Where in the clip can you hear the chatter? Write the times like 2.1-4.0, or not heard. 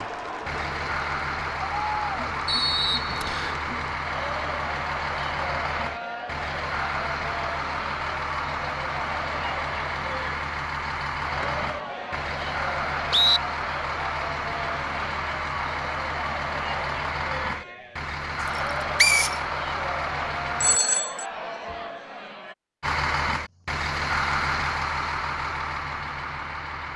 0.0-22.6.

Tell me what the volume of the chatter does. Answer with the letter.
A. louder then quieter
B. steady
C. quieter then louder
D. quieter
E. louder
B.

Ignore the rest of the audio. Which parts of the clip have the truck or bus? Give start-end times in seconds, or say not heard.
0.0-20.8, 22.8-26.9.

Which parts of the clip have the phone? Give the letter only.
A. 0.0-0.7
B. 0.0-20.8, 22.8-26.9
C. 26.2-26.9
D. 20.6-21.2
D.